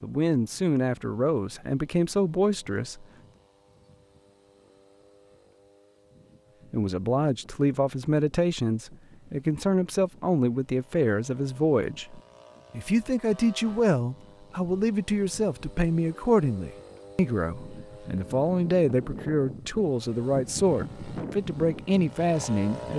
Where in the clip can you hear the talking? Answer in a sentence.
The talking can be heard from 0.0 to 3.0 s and from 6.7 to 22.9 s.